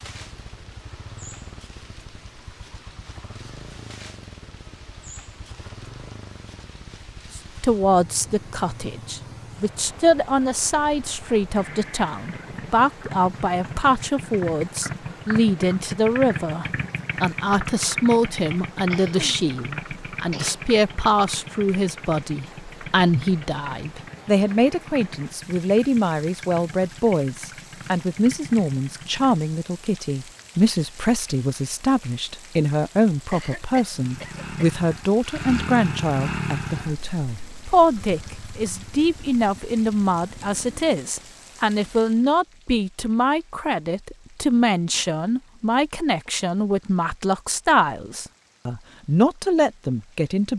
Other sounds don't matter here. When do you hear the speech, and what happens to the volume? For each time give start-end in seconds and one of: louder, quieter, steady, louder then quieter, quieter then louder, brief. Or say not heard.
7.3-50.5 steady.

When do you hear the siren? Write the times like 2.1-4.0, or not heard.
not heard.